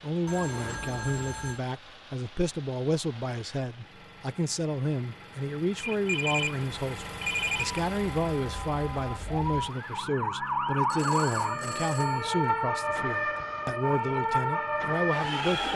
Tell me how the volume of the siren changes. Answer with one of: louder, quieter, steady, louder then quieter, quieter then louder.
louder.